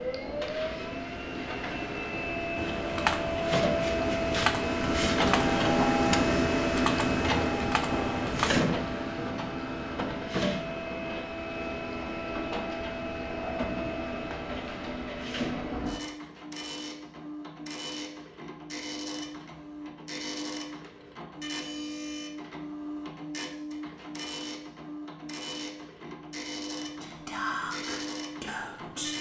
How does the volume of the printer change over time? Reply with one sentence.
The volume of the printer goes down.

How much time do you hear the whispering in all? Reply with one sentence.
You can hear the whispering for 2 seconds altogether.